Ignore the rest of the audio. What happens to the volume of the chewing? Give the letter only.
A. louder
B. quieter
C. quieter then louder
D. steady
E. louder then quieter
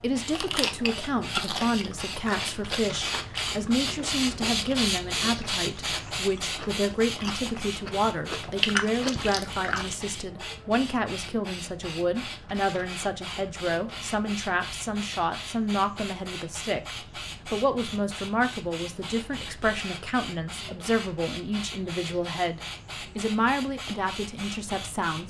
C.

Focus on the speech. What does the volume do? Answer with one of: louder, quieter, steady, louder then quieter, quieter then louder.
steady.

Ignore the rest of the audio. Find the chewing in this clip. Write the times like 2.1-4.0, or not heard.
0.3-9.9.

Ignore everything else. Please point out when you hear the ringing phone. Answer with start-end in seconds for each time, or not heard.
not heard.